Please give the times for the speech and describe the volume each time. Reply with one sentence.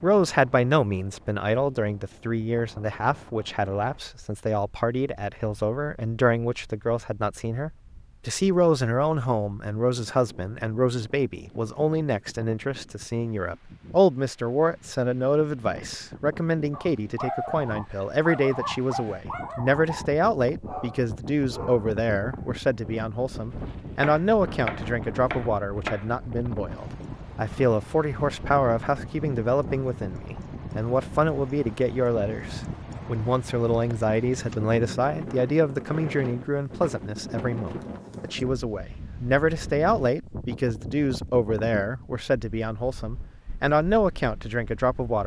The speech can be heard from 0.0 to 45.2 s, at a steady volume.